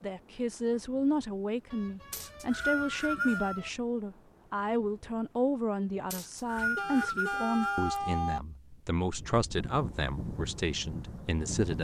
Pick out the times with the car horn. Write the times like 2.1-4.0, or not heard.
1.7-3.7, 6.8-8.4.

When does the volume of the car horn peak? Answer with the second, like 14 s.
8 s.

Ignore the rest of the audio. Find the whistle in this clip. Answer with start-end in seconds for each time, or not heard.
2.1-3.6, 6.1-8.0.